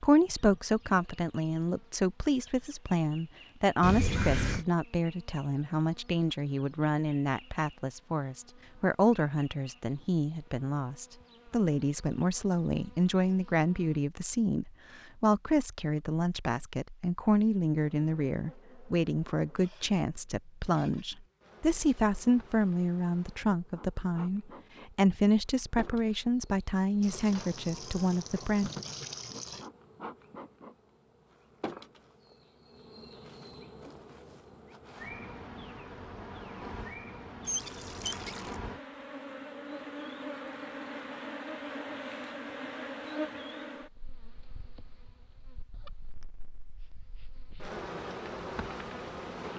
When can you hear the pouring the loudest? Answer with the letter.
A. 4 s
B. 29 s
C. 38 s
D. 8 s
A.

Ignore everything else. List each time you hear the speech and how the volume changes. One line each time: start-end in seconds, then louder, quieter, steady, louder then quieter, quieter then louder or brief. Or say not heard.
0.0-28.7 steady.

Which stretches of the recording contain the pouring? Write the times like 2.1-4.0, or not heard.
3.8-4.7, 27.0-29.7, 37.5-38.5.